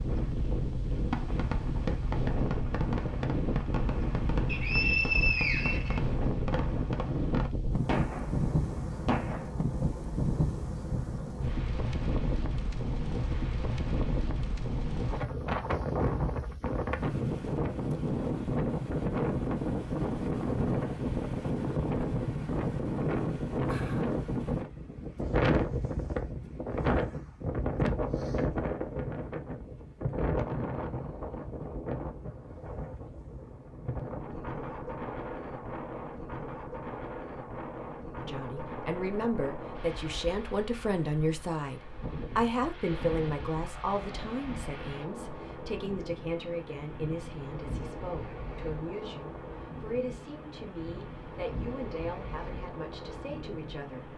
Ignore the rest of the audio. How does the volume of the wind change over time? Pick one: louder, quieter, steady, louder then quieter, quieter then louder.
quieter.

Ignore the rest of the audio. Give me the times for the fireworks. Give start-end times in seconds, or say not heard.
0.9-9.6.